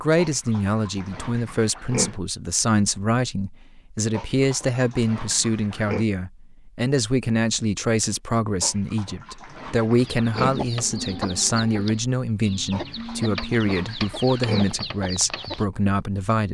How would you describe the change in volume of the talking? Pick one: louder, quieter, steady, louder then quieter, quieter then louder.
steady.